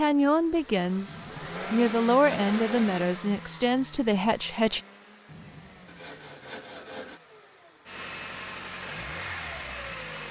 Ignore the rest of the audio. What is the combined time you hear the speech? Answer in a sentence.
You can hear the speech for 5 seconds altogether.